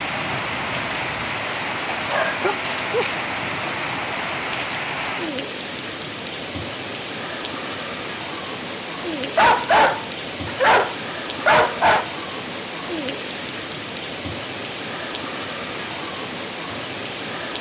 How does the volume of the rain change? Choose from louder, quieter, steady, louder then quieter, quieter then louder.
steady.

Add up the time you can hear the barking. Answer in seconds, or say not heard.
4 s.